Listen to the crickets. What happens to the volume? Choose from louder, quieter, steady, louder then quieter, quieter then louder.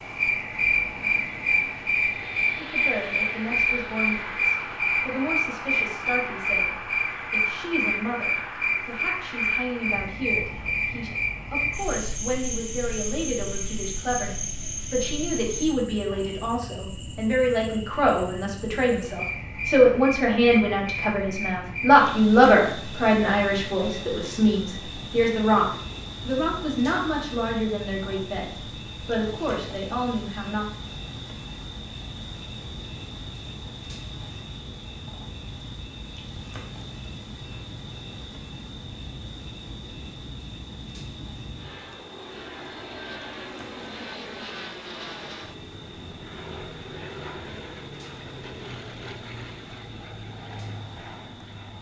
quieter.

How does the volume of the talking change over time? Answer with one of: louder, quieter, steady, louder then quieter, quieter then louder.
louder then quieter.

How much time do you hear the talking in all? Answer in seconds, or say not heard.
28 s.